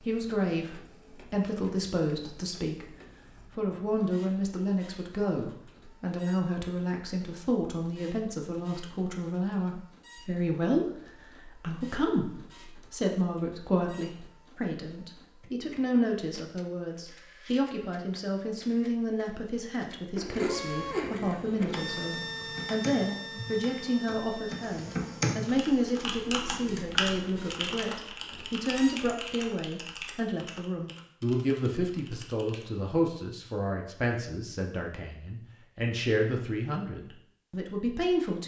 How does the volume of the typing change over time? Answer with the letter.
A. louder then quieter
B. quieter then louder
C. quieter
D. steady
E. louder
A.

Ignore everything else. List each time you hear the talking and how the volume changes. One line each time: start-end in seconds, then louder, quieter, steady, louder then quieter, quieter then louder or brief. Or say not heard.
0.0-38.4 steady.